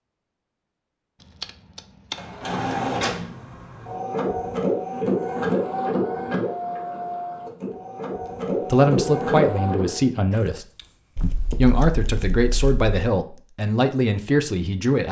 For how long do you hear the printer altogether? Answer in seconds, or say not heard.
8 s.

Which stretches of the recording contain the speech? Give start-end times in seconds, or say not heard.
8.7-15.0.